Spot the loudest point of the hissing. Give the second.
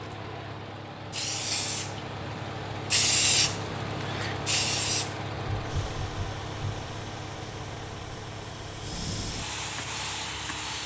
3 s.